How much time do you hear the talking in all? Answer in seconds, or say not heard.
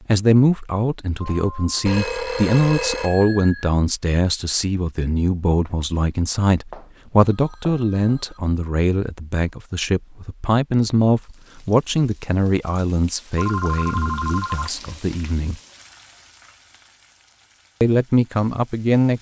17 s.